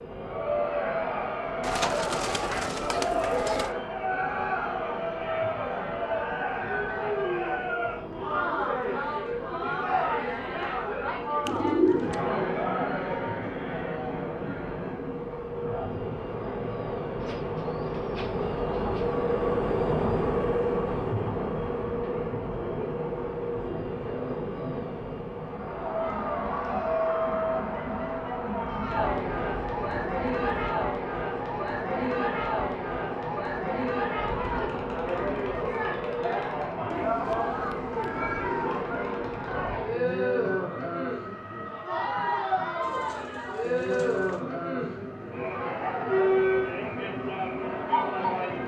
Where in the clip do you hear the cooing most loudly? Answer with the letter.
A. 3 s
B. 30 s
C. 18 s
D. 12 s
D.